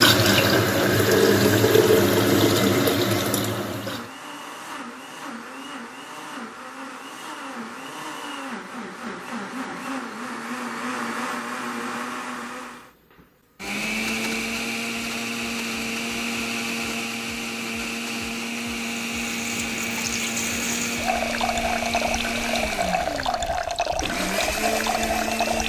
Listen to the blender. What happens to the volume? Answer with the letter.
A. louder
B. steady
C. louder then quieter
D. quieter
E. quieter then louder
A.